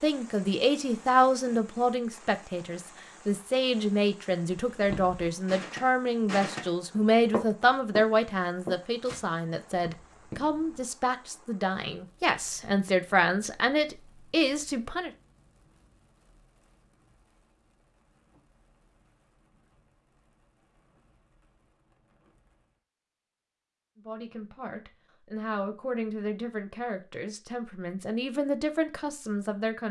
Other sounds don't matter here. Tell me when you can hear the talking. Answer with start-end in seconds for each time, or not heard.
0.0-15.1, 24.1-29.8.